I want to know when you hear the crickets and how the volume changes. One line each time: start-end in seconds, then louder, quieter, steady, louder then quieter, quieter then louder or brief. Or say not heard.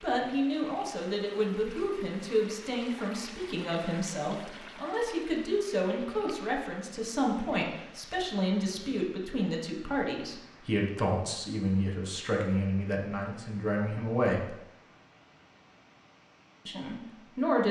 not heard.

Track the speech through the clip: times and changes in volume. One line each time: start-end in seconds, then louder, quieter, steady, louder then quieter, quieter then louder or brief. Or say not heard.
0.0-14.6 steady
16.6-17.6 brief.